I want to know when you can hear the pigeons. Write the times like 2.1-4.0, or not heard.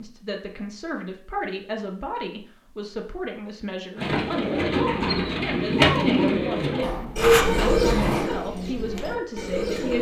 4.0-9.9.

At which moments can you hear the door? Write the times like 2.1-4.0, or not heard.
6.8-8.3.